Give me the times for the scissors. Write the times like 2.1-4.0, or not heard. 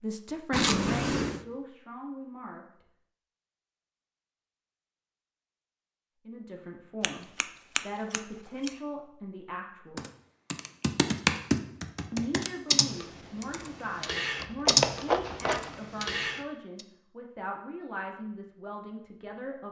0.5-1.4, 7.0-8.7, 14.3-15.8.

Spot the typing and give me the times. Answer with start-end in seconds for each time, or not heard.
9.9-16.8.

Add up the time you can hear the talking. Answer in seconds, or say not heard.
14 s.